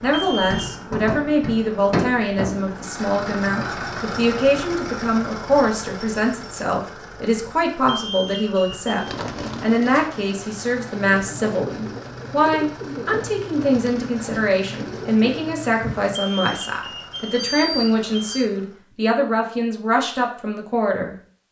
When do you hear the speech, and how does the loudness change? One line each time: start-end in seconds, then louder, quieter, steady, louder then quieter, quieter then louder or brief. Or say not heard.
0.0-21.4 steady.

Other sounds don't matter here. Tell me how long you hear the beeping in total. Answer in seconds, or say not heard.
4 s.